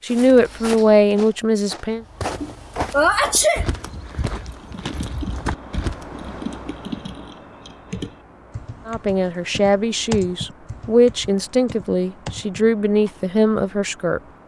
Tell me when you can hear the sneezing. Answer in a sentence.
The sneezing can be heard from 2.4 to 3.6 s.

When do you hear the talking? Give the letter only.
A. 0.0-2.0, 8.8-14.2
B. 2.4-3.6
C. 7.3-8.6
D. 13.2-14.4
A.